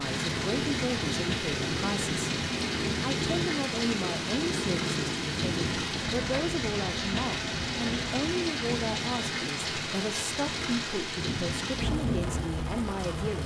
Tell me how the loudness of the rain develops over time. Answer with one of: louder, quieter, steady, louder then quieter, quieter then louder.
steady.